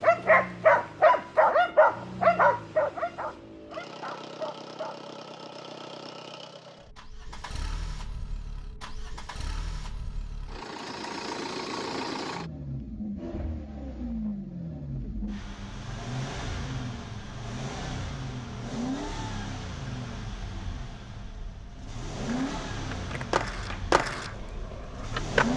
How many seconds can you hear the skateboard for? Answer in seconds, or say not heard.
3 s.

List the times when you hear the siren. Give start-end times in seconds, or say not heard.
not heard.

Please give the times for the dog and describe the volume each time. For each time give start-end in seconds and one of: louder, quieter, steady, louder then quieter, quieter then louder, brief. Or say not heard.
0.0-5.0 quieter.